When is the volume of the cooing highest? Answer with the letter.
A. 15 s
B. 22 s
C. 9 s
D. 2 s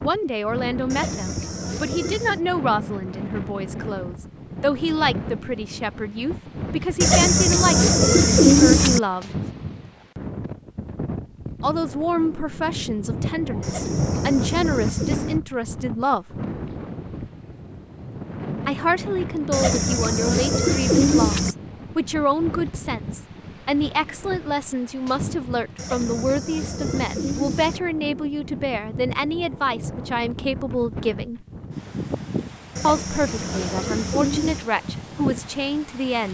C.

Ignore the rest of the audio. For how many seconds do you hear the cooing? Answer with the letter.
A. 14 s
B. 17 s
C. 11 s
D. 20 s
C.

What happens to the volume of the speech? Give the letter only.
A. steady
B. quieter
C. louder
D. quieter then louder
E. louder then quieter
A.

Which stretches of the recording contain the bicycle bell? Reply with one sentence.
You can't hear the bicycle bell here.